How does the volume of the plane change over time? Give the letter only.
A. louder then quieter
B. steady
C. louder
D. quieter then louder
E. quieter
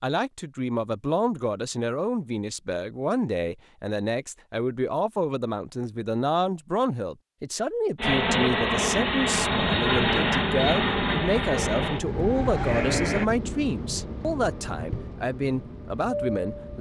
E.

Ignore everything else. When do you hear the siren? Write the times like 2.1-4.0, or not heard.
11.5-13.2.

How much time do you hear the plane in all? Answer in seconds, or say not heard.
9 s.